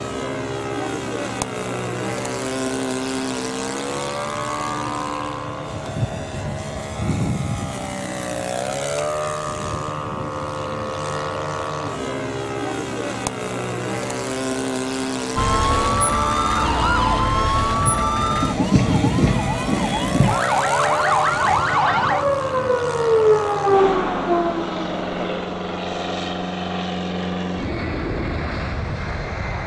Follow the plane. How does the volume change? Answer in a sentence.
The loudness of the plane stays about the same.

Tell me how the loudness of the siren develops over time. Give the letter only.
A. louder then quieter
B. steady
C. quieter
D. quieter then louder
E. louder
B.